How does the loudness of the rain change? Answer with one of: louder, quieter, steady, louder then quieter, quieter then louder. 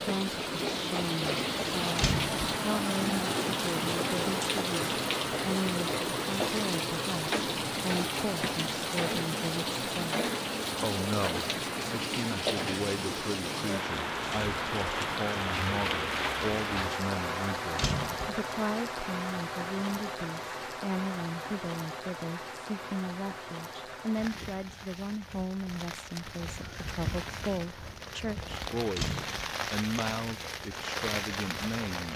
quieter.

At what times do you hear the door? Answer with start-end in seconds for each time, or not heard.
1.9-2.4, 17.8-18.4, 28.9-29.6.